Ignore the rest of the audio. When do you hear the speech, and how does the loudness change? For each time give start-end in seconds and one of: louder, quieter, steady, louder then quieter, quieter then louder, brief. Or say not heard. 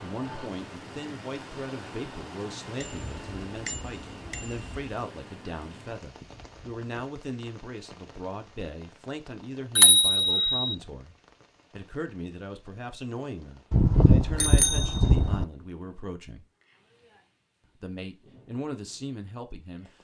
0.0-16.4 steady
17.8-19.9 brief.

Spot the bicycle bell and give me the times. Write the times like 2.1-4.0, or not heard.
2.8-4.8, 9.8-10.8, 13.7-15.4.